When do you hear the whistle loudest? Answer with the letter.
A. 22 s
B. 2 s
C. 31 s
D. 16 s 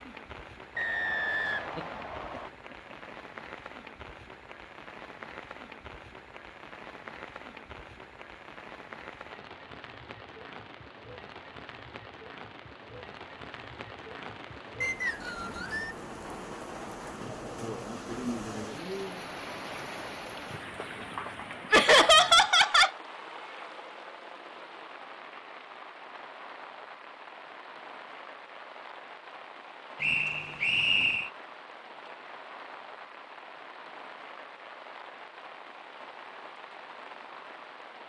C.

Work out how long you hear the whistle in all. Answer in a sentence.
The whistle can be heard for 4 seconds in total.